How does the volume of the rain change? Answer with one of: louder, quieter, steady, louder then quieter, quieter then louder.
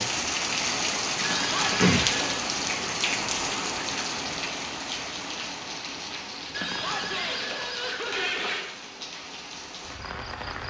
quieter.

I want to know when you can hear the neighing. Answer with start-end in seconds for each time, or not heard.
1.2-2.5, 6.5-8.7.